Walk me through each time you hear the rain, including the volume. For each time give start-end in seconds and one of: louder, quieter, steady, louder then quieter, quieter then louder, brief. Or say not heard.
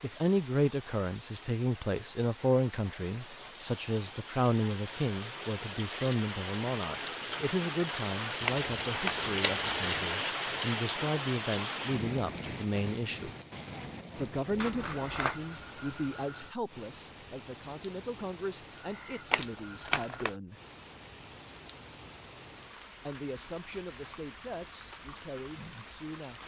0.0-26.4 louder then quieter.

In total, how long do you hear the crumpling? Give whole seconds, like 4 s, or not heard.
2 s.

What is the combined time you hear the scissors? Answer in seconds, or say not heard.
2 s.